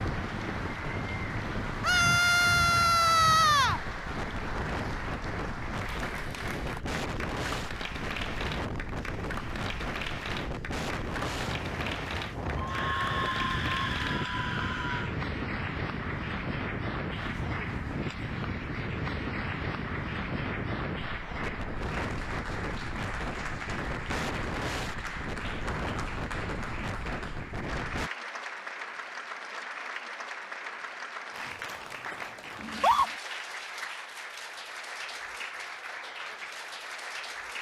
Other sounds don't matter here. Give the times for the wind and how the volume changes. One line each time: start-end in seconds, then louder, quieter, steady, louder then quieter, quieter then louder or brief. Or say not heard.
0.0-28.1 steady.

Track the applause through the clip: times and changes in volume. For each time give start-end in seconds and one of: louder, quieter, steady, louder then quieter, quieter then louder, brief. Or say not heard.
0.0-37.5 steady.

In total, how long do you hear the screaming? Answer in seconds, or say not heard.
5 s.